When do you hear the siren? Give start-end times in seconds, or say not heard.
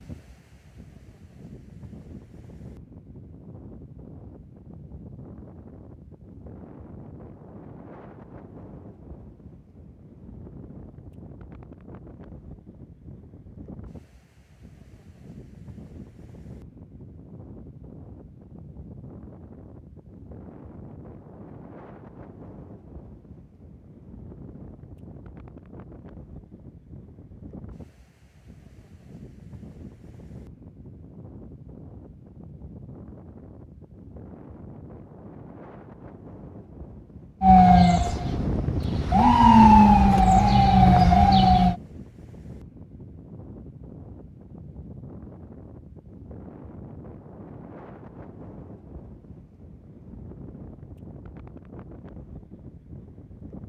37.4-41.8.